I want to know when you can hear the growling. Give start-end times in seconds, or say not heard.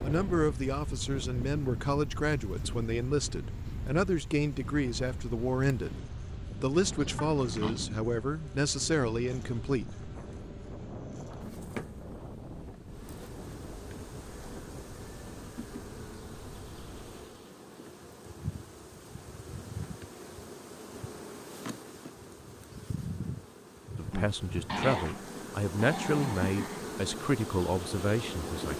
6.7-7.9, 24.6-26.9.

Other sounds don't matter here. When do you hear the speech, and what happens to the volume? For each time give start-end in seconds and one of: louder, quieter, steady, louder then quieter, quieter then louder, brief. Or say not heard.
0.0-10.1 steady
23.9-28.7 steady.